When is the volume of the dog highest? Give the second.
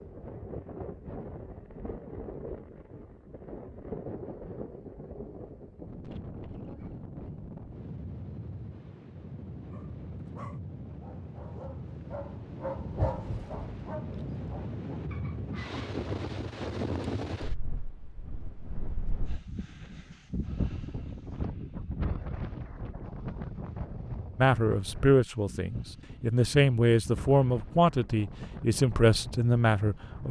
13 s.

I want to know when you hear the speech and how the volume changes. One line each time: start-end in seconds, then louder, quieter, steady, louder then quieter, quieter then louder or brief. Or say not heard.
24.4-30.2 steady.